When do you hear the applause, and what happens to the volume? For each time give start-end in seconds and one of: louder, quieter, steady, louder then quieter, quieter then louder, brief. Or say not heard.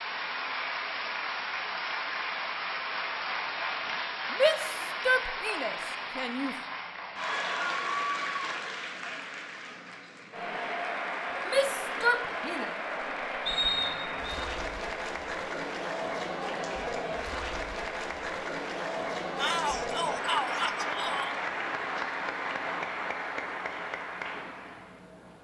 0.0-25.3 steady.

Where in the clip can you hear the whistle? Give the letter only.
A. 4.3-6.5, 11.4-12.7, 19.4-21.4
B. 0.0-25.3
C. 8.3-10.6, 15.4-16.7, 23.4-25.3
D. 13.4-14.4
D.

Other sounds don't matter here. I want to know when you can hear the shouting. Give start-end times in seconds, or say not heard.
4.3-6.5, 11.4-12.7, 19.4-21.4.